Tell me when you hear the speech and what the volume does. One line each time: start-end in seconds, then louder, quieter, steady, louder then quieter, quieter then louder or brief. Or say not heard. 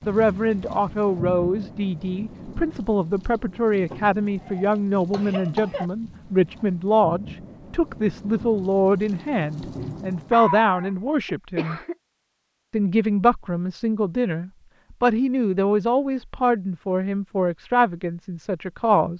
0.1-11.8 steady
12.7-19.1 steady.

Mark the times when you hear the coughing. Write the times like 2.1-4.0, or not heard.
3.9-5.9, 10.3-11.9.